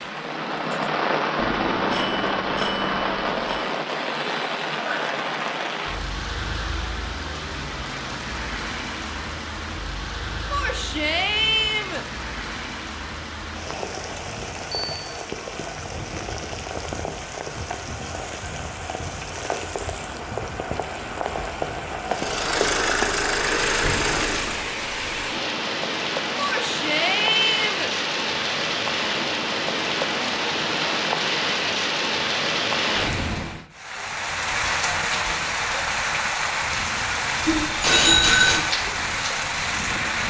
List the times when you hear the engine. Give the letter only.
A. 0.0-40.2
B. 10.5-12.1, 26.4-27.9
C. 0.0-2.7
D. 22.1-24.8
D.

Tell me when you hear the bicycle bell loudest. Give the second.
38 s.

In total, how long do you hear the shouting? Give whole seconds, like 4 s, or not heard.
3 s.